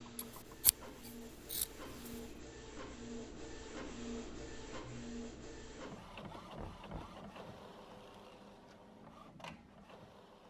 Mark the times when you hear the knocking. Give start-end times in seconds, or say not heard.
0.1-1.1, 6.5-7.2.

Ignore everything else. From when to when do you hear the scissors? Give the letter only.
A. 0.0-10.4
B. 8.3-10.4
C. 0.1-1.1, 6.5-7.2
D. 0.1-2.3
D.